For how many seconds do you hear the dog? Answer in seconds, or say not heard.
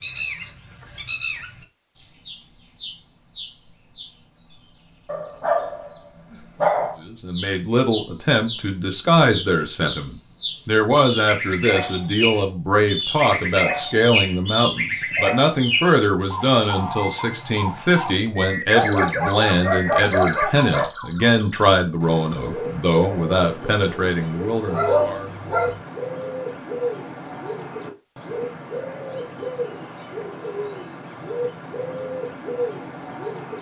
5 s.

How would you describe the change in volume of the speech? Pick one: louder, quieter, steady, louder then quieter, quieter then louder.
steady.